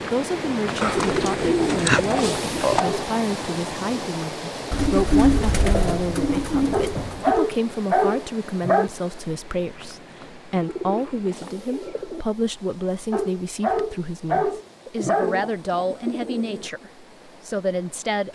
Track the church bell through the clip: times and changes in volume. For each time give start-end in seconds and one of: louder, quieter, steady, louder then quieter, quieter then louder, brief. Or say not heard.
not heard.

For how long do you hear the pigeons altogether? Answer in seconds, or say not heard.
8 s.